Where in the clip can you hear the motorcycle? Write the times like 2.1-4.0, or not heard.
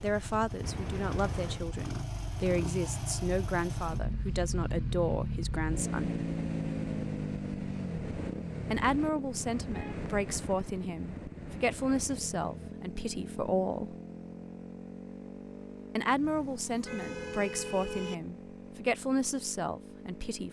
0.0-20.4.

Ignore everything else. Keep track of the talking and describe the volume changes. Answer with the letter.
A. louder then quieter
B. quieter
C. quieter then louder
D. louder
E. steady
E.